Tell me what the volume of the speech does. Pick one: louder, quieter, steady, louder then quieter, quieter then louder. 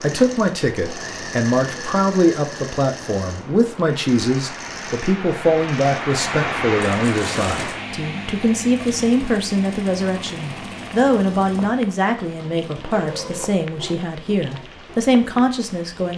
steady.